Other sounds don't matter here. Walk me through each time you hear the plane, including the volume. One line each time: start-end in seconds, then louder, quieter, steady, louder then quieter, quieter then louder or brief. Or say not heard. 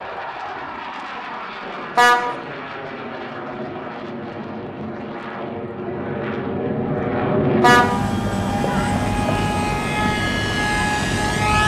0.0-11.6 louder.